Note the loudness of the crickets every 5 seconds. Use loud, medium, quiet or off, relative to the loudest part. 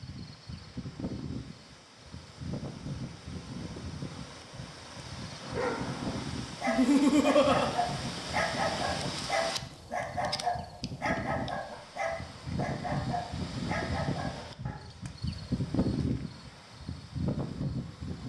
medium, medium, loud, loud.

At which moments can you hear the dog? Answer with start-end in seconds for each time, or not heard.
5.4-14.8.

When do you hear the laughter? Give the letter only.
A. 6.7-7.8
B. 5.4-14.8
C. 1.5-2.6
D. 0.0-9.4
A.